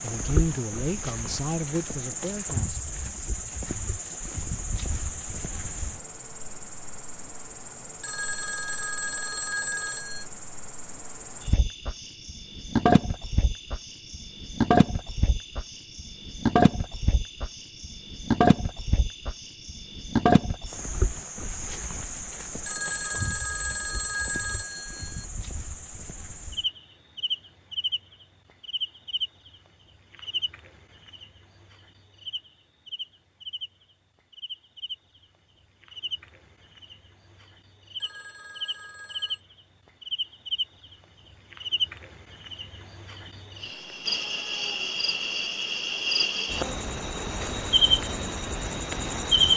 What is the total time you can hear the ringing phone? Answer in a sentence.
The ringing phone can be heard for 6 seconds in total.